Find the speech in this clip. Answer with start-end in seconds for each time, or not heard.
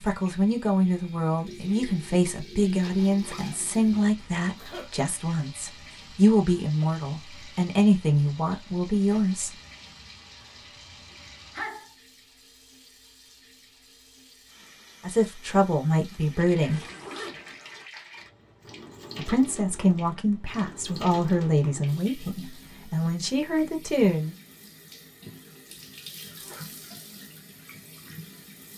0.0-9.5, 15.0-16.9, 19.1-24.4.